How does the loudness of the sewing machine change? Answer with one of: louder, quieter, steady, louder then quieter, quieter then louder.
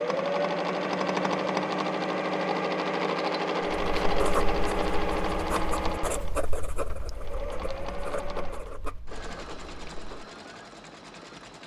quieter.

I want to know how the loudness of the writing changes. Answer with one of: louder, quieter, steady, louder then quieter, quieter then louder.
quieter.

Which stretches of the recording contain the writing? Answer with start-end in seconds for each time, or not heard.
3.8-10.3.